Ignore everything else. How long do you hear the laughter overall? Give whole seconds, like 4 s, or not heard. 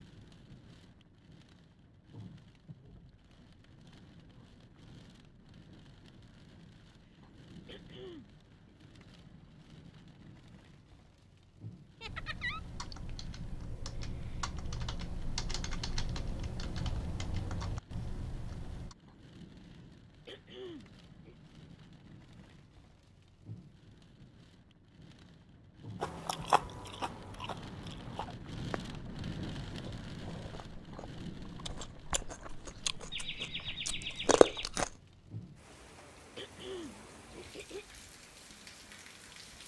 2 s.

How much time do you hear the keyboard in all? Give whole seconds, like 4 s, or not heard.
7 s.